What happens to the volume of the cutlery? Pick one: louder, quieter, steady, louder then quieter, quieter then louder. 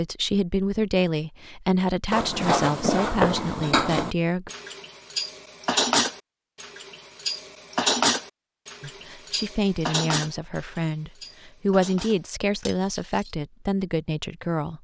quieter.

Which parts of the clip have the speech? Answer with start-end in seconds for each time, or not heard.
0.0-4.5, 8.8-14.8.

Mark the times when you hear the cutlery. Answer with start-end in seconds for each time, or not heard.
2.1-13.3.